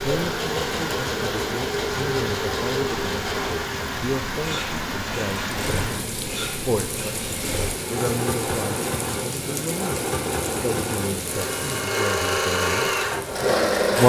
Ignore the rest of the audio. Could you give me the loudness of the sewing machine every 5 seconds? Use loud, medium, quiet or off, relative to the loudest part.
medium, medium, loud.